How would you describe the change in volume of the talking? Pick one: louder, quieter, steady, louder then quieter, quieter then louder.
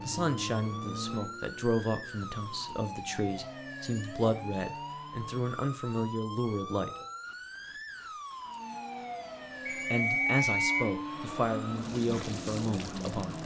steady.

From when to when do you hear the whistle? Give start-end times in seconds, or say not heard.
9.7-10.8.